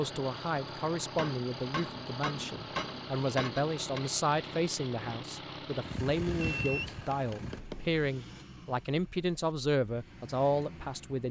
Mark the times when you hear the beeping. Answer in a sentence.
You can hear the beeping from 5.8 to 7.6 s.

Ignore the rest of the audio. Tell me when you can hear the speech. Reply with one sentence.
The speech can be heard from 0.0 to 11.2 s.